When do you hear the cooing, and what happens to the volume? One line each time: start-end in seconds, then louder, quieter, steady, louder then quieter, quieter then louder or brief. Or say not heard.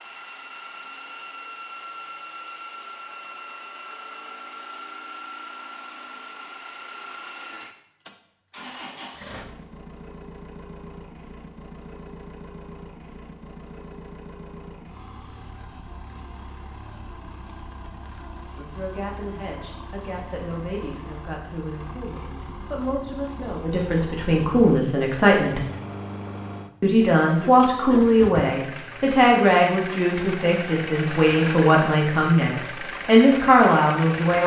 not heard.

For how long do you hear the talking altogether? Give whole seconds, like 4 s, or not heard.
15 s.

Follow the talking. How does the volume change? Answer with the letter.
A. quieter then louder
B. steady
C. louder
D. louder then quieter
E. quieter
C.